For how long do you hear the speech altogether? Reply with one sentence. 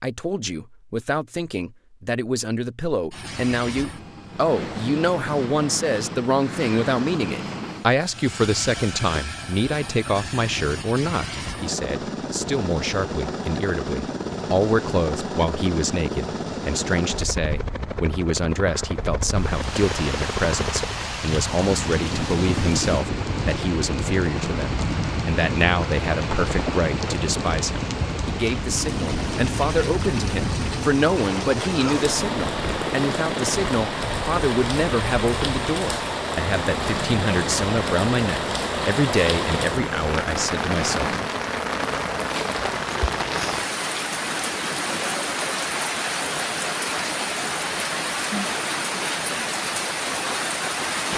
The speech can be heard for 41 seconds in total.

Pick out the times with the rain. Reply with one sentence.
The rain can be heard from 19.3 to 51.1 s.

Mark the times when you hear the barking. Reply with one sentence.
You can't hear the barking here.